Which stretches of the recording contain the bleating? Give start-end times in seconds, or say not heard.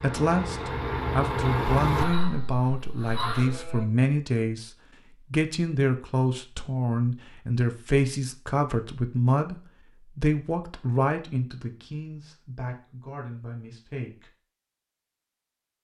2.0-3.9.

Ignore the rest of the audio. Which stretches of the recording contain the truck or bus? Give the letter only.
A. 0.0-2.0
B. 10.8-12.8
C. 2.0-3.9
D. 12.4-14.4
A.